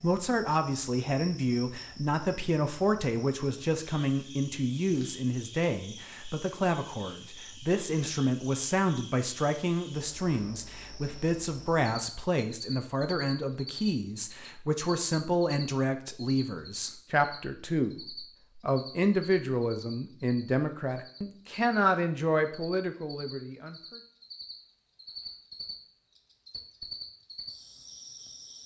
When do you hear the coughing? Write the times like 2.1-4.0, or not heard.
not heard.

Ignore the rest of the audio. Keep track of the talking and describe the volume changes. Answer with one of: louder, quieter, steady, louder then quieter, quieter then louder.
steady.